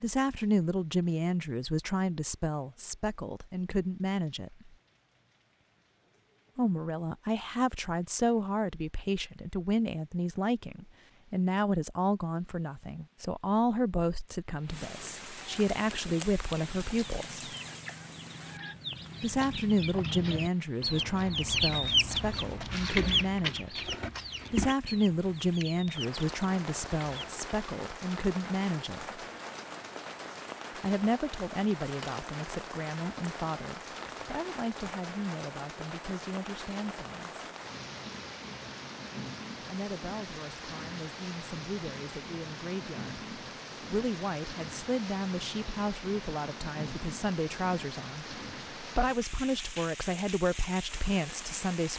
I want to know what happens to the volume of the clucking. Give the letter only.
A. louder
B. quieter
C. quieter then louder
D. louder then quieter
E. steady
D.